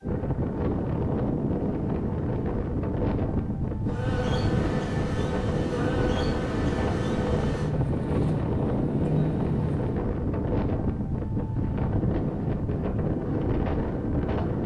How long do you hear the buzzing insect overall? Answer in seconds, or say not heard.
6 s.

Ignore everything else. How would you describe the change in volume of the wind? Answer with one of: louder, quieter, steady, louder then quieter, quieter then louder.
steady.